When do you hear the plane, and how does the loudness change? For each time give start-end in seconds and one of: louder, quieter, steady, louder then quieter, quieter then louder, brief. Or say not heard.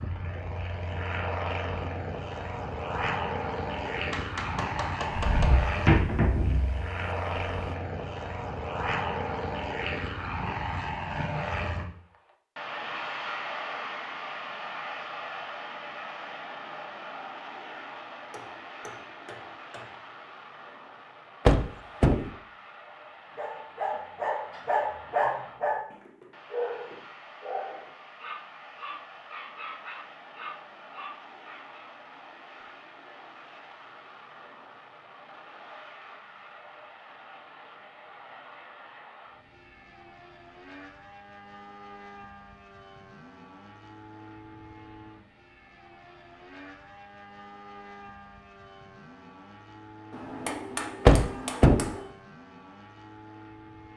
0.0-53.9 quieter.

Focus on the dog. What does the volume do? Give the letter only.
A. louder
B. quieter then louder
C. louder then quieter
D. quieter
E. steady
D.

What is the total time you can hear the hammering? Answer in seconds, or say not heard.
5 s.